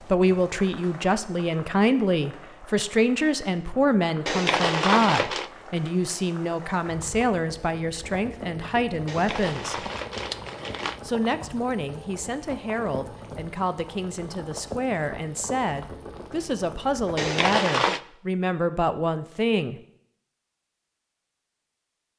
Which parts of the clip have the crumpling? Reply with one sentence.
You can hear the crumpling from 4.2 to 5.5 s, from 9.1 to 11.0 s and from 17.1 to 18.0 s.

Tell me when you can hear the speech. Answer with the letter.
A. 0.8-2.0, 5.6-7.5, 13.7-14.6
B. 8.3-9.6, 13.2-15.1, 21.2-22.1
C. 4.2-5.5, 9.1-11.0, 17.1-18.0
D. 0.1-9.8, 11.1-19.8
D.